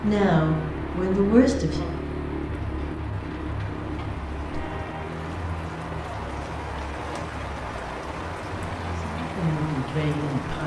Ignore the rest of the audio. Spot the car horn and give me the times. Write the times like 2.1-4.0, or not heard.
4.5-5.2.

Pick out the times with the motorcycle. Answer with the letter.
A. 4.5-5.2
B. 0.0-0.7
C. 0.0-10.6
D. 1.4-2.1
C.